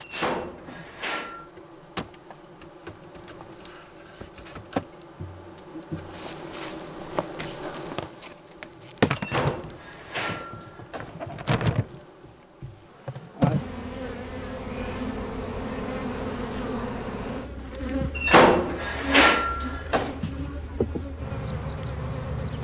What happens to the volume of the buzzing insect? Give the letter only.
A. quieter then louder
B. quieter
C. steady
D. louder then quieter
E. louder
E.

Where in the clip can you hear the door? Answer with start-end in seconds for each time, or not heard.
0.0-1.5, 9.2-11.5, 18.1-20.1.